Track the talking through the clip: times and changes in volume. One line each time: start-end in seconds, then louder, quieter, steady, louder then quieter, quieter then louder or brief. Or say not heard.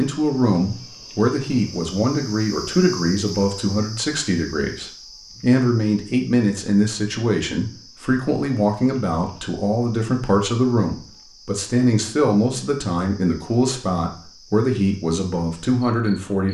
0.0-16.5 steady.